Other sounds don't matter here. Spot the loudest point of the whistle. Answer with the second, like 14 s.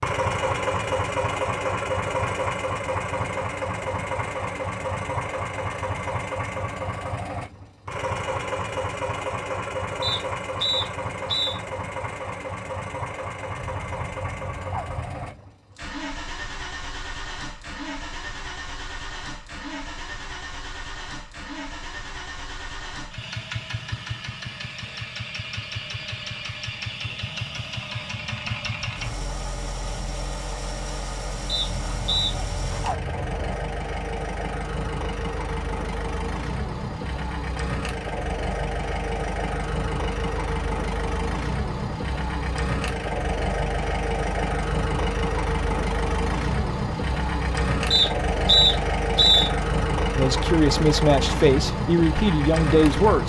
49 s.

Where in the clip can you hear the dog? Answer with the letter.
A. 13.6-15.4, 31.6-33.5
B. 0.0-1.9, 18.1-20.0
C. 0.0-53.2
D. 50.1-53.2
A.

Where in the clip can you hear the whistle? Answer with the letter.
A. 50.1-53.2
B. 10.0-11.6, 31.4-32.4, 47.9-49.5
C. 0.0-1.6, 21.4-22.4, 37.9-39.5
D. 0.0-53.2
B.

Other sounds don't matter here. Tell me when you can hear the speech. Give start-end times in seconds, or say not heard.
50.1-53.2.